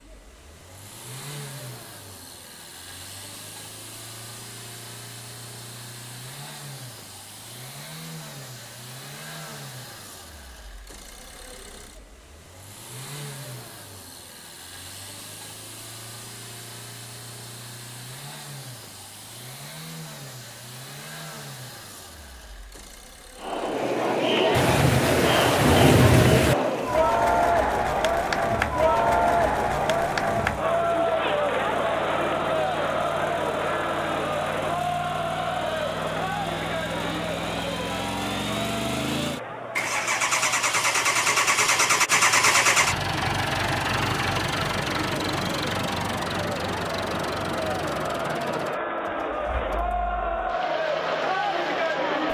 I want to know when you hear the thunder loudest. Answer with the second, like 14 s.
26 s.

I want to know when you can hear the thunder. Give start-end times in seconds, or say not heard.
24.5-26.6.